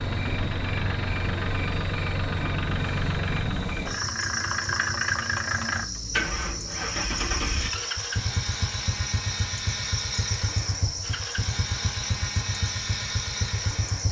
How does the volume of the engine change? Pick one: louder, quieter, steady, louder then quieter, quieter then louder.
steady.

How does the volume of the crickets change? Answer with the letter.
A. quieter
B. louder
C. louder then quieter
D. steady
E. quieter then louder
D.